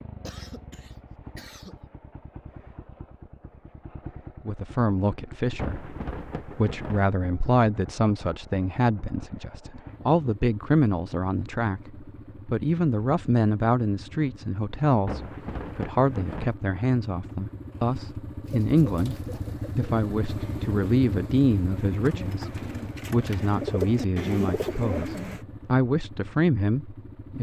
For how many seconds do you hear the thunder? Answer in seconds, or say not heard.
3 s.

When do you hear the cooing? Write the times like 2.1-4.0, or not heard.
18.4-25.4.